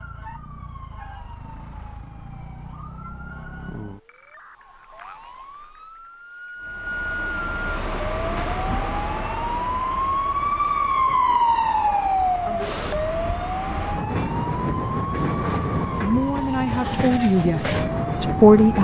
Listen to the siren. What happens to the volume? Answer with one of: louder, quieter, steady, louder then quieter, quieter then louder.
louder then quieter.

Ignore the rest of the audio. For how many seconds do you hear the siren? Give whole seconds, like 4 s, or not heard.
19 s.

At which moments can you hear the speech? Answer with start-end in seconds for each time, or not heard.
15.3-18.8.